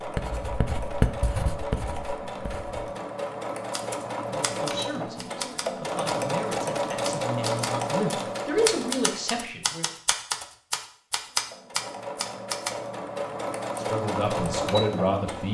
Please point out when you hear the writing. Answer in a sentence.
You can hear the writing from 0.0 to 2.9 s.